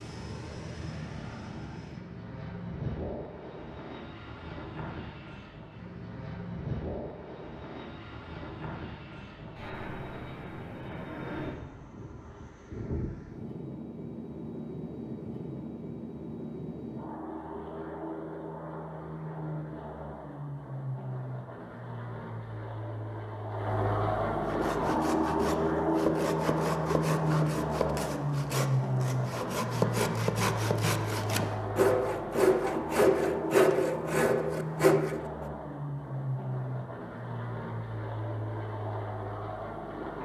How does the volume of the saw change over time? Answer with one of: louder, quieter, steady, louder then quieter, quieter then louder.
louder.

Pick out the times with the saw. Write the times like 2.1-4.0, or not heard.
24.4-35.2.